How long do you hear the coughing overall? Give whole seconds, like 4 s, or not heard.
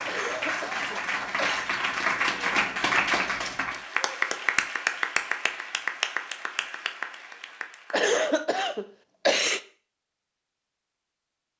3 s.